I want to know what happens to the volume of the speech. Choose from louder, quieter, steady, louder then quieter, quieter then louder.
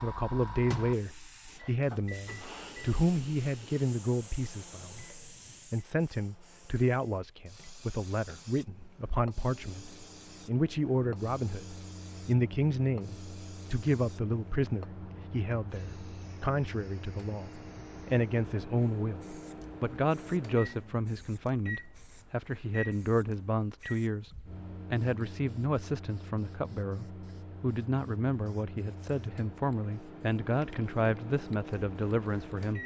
steady.